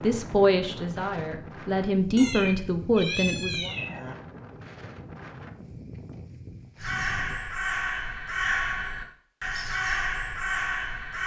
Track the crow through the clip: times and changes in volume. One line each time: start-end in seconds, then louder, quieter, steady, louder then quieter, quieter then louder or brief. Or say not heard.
6.8-11.2 steady.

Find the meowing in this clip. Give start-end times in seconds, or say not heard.
2.1-4.2.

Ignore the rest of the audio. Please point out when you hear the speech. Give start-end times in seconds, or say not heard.
0.0-3.7.